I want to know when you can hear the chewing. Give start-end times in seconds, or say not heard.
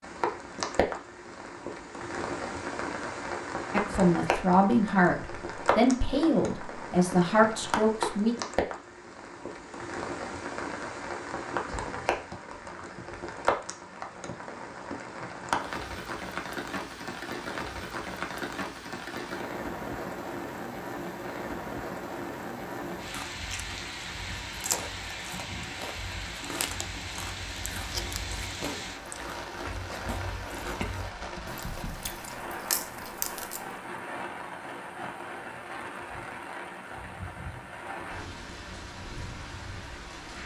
22.9-33.8.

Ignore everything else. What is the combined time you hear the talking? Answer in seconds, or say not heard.
5 s.